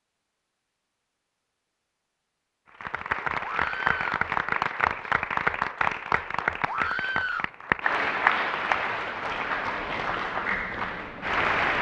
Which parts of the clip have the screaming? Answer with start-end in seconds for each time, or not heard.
3.4-4.2, 6.7-7.5.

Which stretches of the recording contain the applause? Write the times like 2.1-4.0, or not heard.
2.8-11.7.